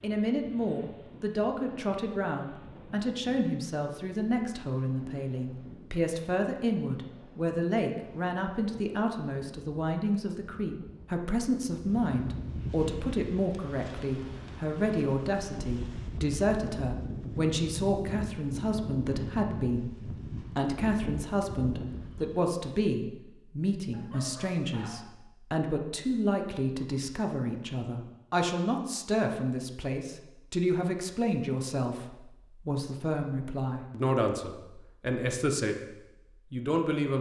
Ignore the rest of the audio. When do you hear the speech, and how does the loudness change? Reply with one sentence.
You can hear the speech from 0.0 to 35.8 s, at a steady volume; and briefly from 36.5 to 37.1 s.